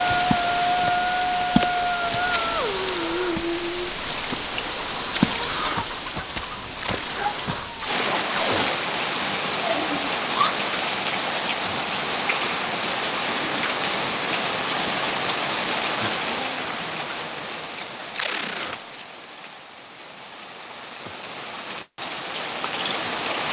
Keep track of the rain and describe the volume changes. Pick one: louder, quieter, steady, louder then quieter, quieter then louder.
quieter.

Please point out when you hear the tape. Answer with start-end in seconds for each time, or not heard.
6.8-8.7, 18.1-18.8.